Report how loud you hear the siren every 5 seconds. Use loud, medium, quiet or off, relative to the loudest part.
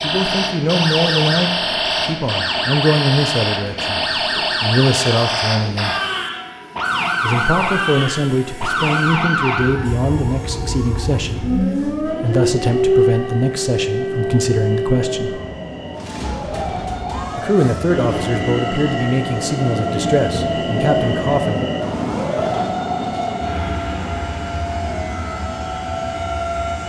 loud, loud, loud, medium, medium, medium.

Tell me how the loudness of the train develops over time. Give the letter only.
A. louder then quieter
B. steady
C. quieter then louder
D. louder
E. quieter
D.